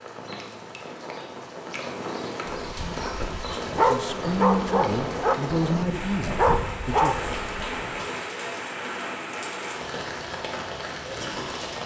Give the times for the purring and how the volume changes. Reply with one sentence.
The purring can't be heard in this clip.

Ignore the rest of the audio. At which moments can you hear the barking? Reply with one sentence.
You can hear the barking from 2.5 to 7.9 s.